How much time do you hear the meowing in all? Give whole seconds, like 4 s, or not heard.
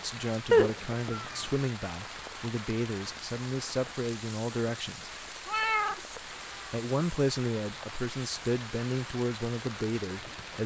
2 s.